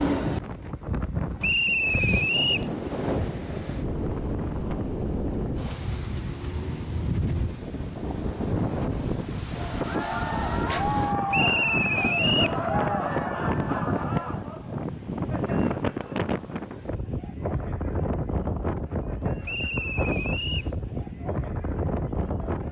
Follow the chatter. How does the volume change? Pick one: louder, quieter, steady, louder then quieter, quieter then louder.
quieter.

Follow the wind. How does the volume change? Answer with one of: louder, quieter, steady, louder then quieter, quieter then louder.
steady.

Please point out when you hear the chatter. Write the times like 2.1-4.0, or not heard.
9.6-22.6.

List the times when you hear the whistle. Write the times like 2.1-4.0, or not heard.
1.4-2.7, 11.3-12.6, 19.4-20.7.